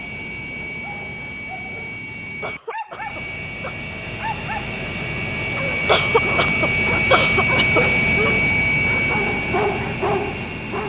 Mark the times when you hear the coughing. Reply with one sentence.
The coughing can be heard from 2.4 to 3.8 s and from 5.8 to 7.8 s.